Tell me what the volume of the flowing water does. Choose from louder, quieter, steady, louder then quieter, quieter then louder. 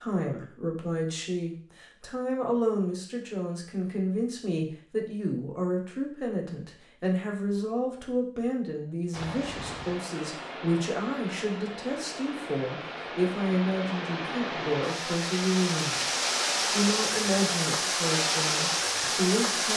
louder.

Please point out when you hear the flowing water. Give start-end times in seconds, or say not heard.
9.1-19.7.